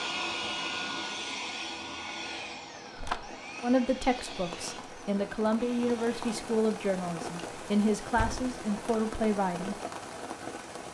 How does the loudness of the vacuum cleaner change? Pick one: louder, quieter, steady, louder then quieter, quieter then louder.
quieter.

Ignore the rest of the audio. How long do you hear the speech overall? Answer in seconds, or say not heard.
6 s.